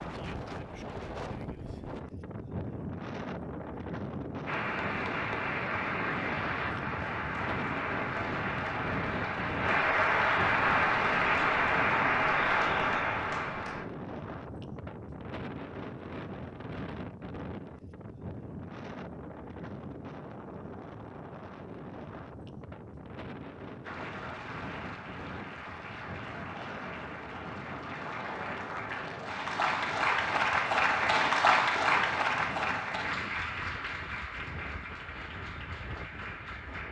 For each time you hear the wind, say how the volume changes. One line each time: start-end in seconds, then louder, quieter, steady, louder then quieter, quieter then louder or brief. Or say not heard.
0.0-36.8 quieter.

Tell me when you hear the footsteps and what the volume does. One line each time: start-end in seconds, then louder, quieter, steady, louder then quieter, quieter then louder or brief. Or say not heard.
not heard.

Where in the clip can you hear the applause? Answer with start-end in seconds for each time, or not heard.
4.5-13.8, 23.8-36.8.